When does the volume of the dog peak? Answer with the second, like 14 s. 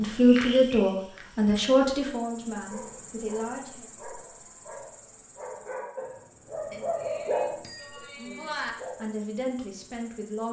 7 s.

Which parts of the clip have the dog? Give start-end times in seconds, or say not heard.
2.6-9.2.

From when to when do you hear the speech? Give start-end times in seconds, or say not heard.
0.0-3.9, 8.2-10.4.